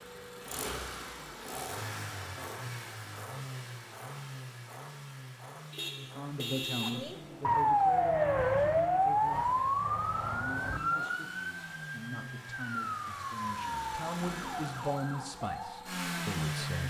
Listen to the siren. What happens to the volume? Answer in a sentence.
The loudness of the siren goes down.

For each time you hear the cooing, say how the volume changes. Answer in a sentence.
The cooing can't be heard in this clip.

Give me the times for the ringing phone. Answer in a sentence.
You can't hear the ringing phone here.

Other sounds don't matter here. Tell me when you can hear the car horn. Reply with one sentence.
You can hear the car horn from 5.7 to 7.2 s.